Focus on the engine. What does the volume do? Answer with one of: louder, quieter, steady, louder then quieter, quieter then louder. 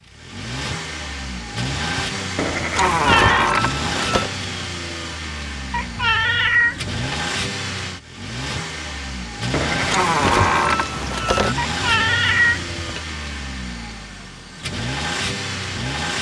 steady.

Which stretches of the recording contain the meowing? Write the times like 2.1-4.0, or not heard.
2.9-3.5, 5.7-7.0, 11.6-13.0.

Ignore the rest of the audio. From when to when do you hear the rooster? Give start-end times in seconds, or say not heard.
not heard.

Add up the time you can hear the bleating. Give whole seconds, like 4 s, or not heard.
4 s.